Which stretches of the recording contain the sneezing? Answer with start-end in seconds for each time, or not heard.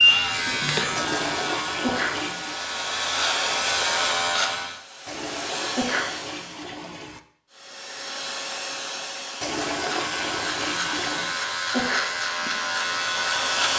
1.6-2.1, 5.6-6.1, 11.6-12.1.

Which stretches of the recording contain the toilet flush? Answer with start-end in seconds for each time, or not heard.
0.9-2.6, 5.0-7.2, 9.4-11.3.